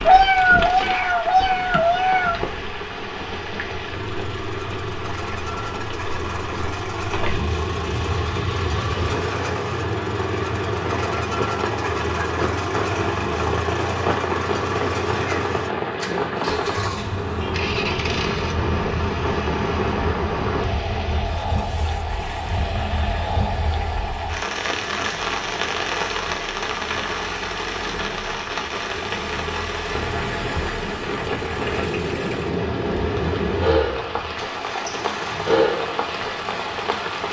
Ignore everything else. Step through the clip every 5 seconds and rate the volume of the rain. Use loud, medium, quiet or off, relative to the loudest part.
medium, medium, loud, loud, loud, loud, loud, loud.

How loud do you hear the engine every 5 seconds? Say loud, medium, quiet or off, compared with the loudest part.
medium, loud, loud, loud, medium, medium, medium, medium.